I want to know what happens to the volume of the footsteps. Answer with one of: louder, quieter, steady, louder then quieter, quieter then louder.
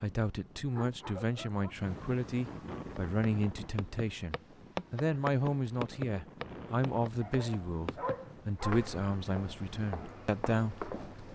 quieter.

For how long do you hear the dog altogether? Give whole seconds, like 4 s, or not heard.
3 s.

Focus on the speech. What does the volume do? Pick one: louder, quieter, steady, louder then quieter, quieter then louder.
steady.